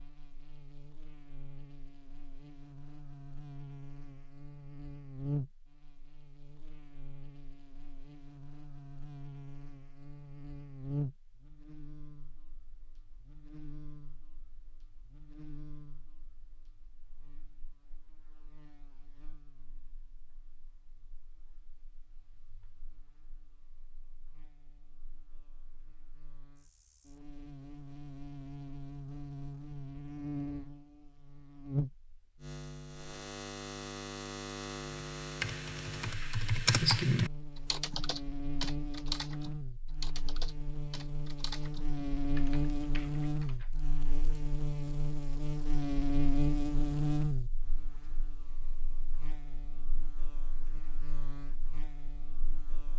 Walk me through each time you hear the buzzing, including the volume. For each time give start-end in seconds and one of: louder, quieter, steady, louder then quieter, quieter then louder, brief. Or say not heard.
0.0-52.9 louder.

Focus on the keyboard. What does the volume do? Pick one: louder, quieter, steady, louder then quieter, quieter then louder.
quieter.